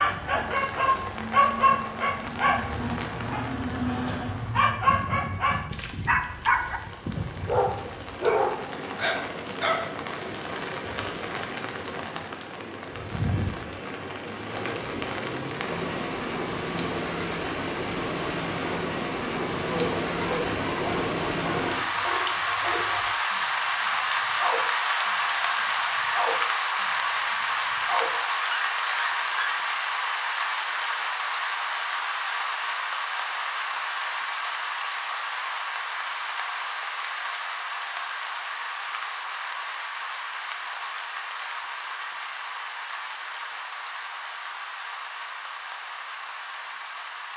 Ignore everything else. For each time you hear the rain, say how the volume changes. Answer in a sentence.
The rain can be heard from 0.0 to 47.3 s, getting louder then quieter.